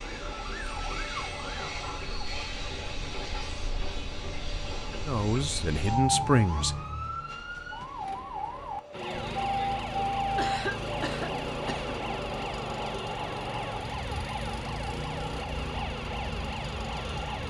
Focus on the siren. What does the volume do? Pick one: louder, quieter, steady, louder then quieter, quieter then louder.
louder.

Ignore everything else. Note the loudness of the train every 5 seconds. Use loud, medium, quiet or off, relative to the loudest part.
loud, loud, loud, medium.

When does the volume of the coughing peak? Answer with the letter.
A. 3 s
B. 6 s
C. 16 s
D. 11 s
D.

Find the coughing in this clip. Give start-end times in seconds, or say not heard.
10.3-11.9.